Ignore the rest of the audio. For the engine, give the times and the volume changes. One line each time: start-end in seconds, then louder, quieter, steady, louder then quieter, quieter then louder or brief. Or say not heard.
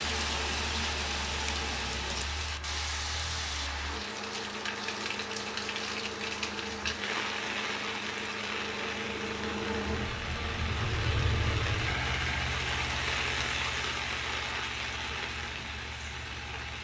0.1-16.7 louder then quieter.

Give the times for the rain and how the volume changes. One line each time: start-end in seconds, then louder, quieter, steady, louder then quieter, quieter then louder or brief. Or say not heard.
0.0-16.7 steady.